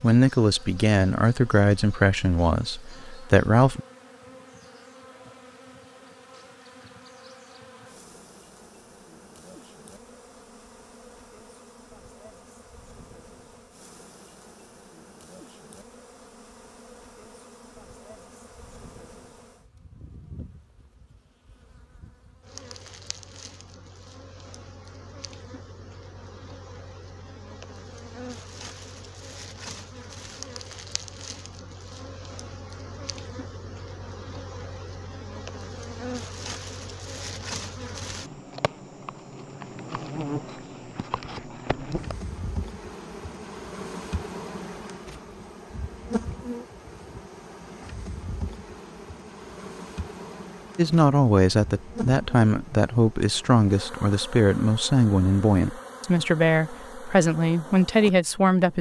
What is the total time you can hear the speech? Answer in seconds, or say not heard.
12 s.